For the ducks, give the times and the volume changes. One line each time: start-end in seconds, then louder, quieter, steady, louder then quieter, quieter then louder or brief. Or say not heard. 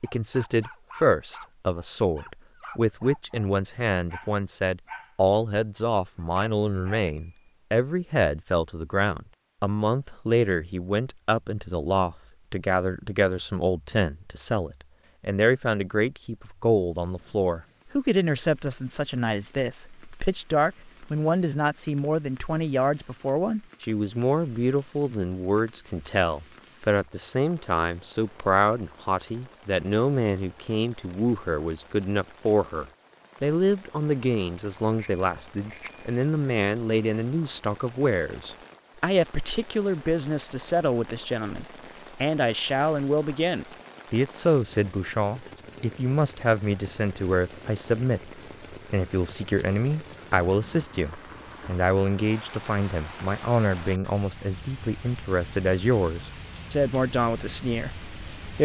not heard.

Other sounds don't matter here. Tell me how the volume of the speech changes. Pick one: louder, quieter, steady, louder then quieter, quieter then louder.
steady.